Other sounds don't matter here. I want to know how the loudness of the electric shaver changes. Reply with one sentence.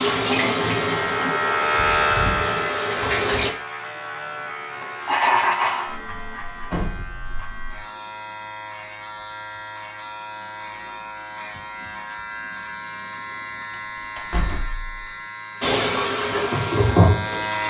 The loudness of the electric shaver goes down.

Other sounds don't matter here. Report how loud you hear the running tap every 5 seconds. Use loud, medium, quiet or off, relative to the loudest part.
loud, off, off, loud.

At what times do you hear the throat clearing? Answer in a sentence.
The throat clearing can be heard from 5.0 to 5.8 s.